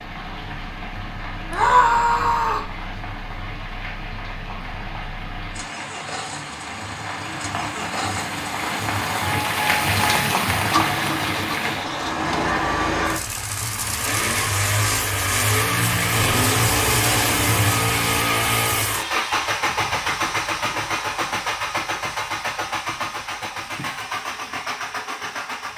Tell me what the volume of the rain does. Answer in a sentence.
The volume of the rain goes up.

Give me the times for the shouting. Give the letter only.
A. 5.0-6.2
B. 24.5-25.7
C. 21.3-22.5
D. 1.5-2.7
D.